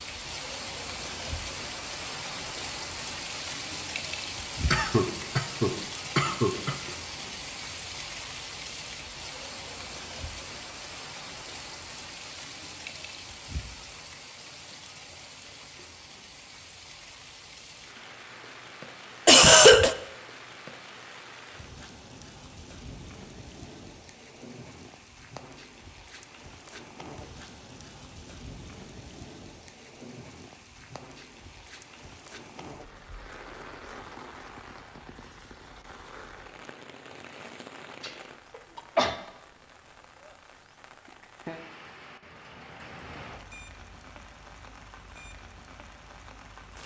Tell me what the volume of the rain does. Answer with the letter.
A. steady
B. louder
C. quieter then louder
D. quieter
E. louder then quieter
D.